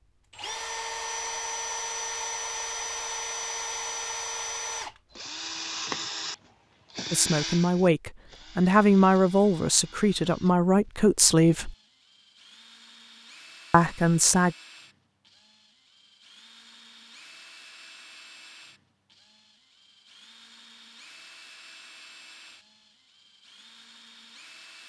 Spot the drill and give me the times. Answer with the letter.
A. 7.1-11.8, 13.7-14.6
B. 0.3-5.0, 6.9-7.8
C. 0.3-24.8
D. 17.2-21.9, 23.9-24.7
C.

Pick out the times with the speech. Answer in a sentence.
You can hear the speech from 7.1 to 11.8 s and from 13.7 to 14.6 s.